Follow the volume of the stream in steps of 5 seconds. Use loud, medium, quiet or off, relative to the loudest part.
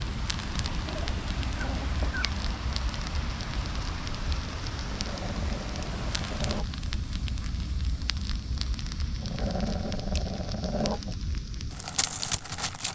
loud, loud, off.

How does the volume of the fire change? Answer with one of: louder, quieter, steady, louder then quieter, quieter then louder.
steady.